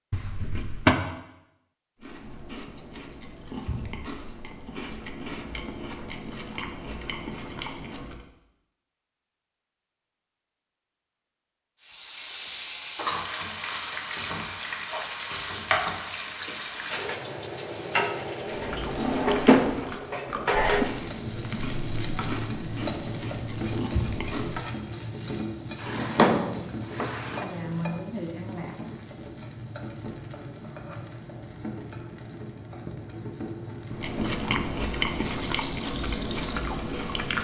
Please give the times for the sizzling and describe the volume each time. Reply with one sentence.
The sizzling can be heard from 11.8 to 37.3 s, getting quieter.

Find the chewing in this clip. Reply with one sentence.
You can hear the chewing from 2.0 to 8.2 s, from 18.4 to 24.7 s and from 33.9 to 37.3 s.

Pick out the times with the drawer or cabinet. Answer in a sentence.
The drawer or cabinet can be heard from 0.1 to 0.9 s, from 18.9 to 19.9 s and from 25.8 to 27.5 s.